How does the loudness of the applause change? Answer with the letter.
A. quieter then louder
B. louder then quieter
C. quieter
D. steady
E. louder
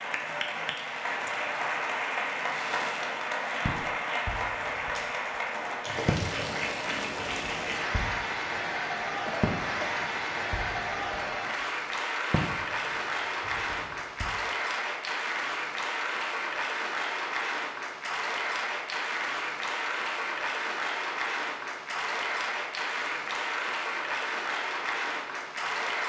D.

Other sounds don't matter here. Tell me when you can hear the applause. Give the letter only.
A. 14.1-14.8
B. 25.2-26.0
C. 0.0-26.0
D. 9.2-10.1
C.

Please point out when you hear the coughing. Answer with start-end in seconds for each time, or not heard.
9.2-10.1.